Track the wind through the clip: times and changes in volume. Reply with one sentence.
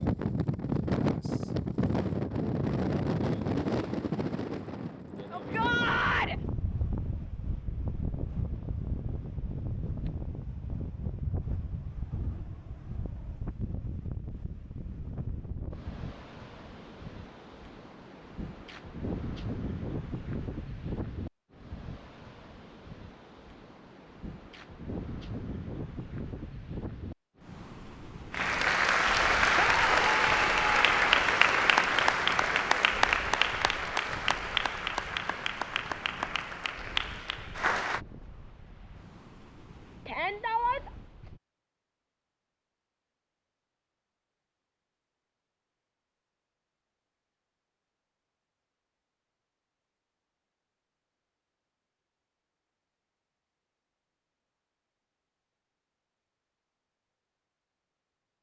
You can hear the wind from 0.0 to 41.4 s, getting quieter.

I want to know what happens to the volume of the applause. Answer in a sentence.
The volume of the applause goes down.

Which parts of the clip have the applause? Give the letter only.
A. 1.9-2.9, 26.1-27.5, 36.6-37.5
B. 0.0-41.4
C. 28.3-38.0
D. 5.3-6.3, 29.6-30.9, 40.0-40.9
C.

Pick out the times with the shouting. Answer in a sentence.
You can hear the shouting from 5.3 to 6.3 s, from 29.6 to 30.9 s and from 40.0 to 40.9 s.